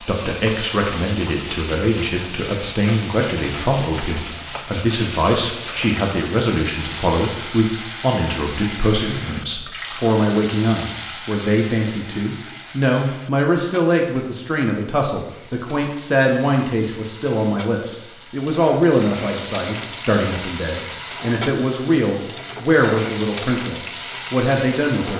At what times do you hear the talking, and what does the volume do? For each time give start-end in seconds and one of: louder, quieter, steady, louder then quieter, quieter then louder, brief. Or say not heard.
0.0-25.1 steady.